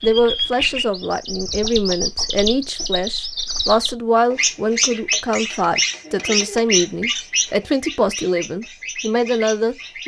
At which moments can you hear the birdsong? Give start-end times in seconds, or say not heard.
0.0-10.0.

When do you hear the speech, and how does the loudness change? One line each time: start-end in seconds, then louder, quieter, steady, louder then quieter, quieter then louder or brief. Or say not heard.
0.0-10.0 steady.